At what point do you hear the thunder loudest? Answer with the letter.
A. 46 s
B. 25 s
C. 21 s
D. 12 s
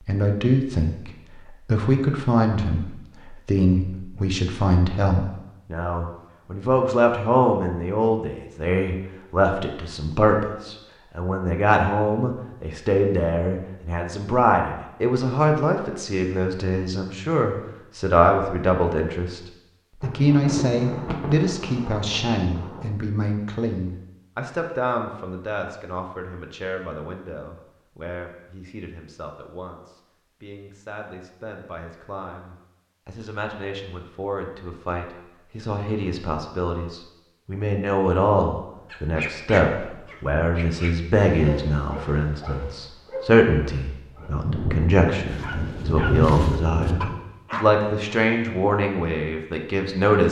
A.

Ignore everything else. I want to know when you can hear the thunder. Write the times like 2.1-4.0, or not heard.
20.0-22.9, 44.1-47.1.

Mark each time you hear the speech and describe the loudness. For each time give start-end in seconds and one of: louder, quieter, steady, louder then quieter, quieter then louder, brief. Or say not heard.
0.0-19.4 steady
20.0-50.2 quieter then louder.